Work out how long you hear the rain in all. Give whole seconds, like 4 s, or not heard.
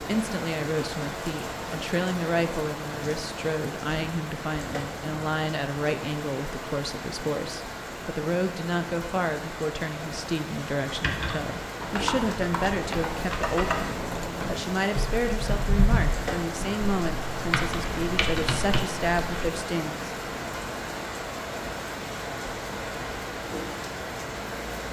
25 s.